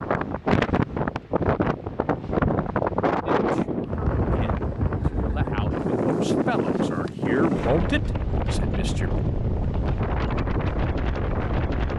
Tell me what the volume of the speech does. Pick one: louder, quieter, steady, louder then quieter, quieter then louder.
louder.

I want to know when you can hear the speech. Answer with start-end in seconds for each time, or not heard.
3.2-9.2.